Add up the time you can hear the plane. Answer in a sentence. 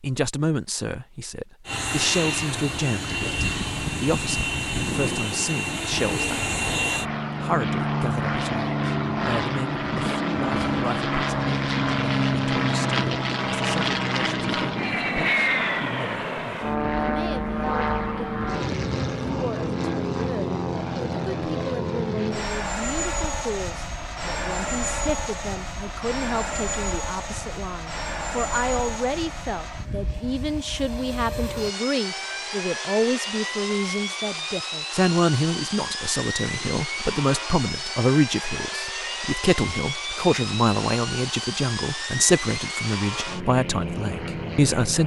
The plane can be heard for 43 seconds in total.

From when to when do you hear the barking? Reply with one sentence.
The barking can't be heard in this clip.